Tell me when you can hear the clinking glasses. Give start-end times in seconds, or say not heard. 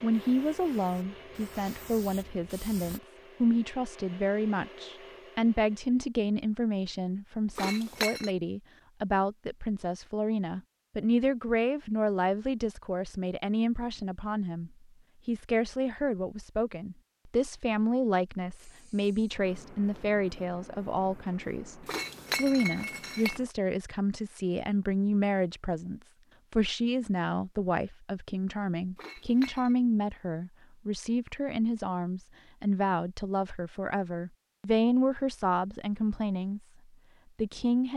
7.5-8.3, 21.9-23.4, 28.9-29.8.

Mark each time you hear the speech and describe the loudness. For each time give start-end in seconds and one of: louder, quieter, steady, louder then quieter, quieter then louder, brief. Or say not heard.
0.0-36.6 steady
37.4-37.9 brief.